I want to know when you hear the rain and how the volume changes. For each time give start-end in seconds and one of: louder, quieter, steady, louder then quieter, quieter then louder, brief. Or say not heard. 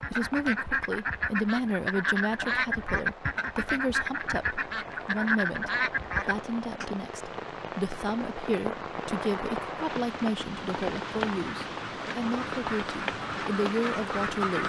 0.0-14.6 louder.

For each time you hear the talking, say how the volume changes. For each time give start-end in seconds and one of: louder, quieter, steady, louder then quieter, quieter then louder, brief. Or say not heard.
0.1-14.6 steady.